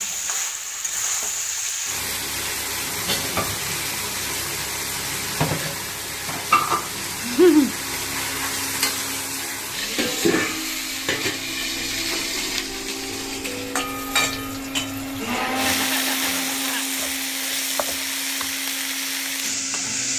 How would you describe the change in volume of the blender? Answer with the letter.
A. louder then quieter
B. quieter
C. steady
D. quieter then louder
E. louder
A.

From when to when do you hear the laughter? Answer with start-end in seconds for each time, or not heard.
7.2-7.8, 15.2-16.9.